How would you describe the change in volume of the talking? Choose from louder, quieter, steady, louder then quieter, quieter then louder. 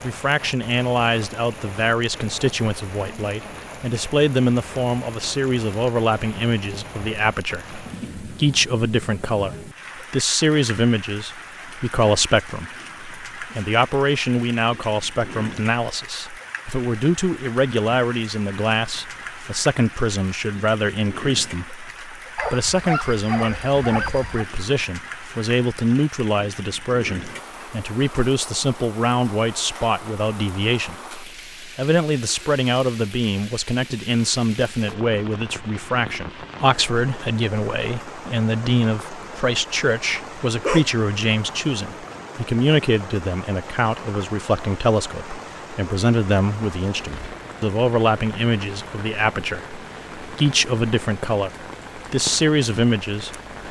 steady.